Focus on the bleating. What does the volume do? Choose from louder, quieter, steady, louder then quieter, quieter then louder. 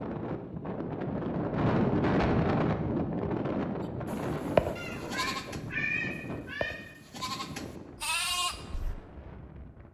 quieter then louder.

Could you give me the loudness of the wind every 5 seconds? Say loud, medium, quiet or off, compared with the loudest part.
loud, quiet.